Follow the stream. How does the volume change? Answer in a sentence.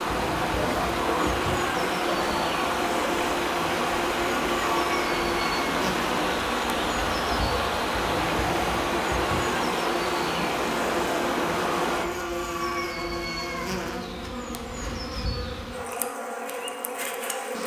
The loudness of the stream stays about the same.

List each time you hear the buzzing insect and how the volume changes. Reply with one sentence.
The buzzing insect can be heard from 0.0 to 17.6 s, at a steady volume.